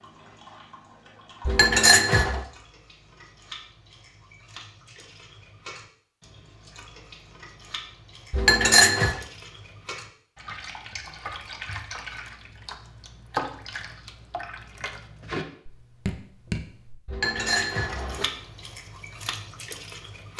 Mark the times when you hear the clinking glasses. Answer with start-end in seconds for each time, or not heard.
1.4-2.5, 8.3-9.2, 17.1-18.2.